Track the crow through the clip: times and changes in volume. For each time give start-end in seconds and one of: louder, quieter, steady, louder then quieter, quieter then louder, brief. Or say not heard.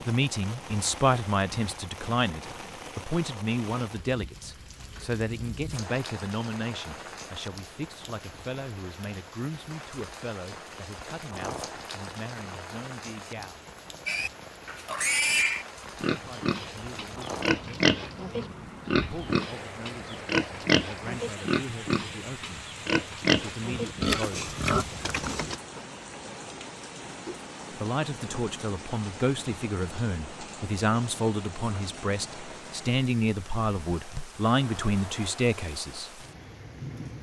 not heard.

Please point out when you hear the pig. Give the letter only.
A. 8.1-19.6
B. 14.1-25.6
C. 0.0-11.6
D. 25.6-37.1
B.